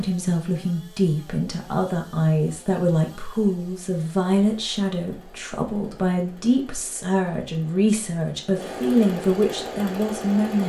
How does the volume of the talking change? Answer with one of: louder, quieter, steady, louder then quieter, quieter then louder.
steady.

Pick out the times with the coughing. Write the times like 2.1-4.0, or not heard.
not heard.